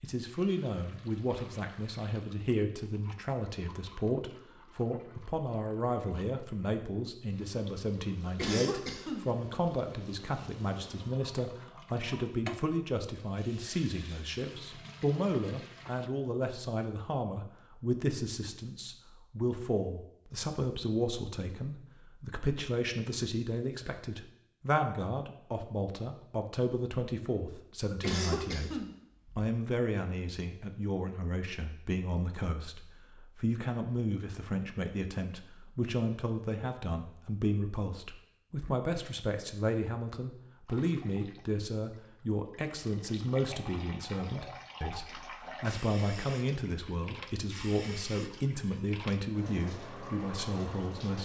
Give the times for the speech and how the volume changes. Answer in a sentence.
You can hear the speech from 0.0 to 51.1 s, at a steady volume.